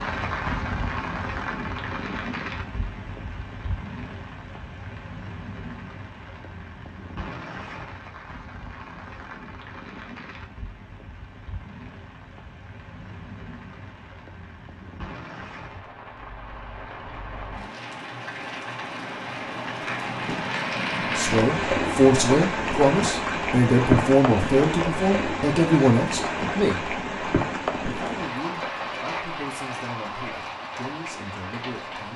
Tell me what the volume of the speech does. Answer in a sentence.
The loudness of the speech goes down.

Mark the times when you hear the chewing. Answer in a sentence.
The chewing can't be heard in this clip.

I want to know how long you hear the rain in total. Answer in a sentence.
You can hear the rain for 32 seconds altogether.